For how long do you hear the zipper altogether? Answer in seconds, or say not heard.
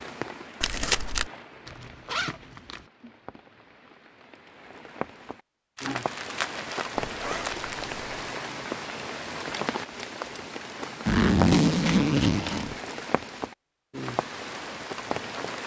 4 s.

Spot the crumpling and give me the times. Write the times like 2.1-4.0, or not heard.
0.6-1.3, 5.8-7.9, 11.8-12.7.